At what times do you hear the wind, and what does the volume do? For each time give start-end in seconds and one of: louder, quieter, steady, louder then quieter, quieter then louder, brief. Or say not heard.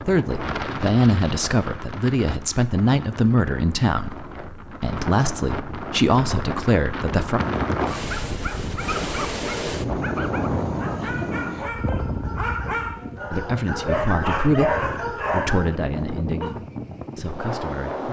0.0-18.0 louder then quieter.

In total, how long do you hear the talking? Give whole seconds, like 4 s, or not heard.
12 s.